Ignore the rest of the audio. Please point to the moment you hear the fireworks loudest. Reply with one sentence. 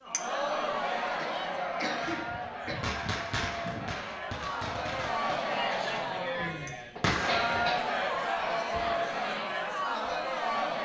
The loudest moment of the fireworks is at 7 seconds.